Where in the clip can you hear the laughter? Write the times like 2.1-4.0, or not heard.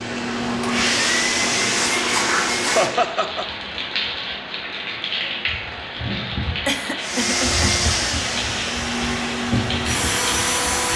2.8-3.5, 6.7-7.8.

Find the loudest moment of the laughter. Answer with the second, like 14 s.
3 s.